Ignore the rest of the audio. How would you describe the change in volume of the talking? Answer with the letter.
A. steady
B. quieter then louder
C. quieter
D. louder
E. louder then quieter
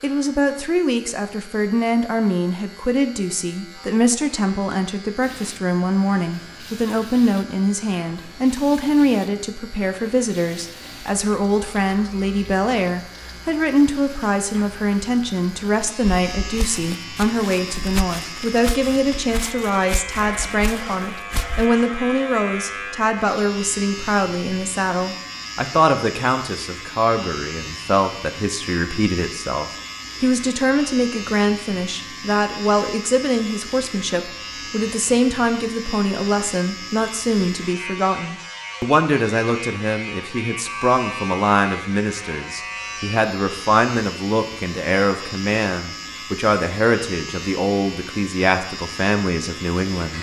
A.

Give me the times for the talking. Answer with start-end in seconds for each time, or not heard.
0.0-50.1.